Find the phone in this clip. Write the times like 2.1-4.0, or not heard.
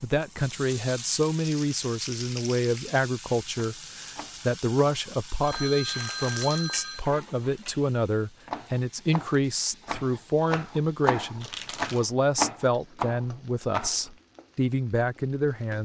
5.4-7.0.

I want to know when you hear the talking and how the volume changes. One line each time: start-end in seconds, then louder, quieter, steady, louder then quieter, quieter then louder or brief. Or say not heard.
0.0-15.8 steady.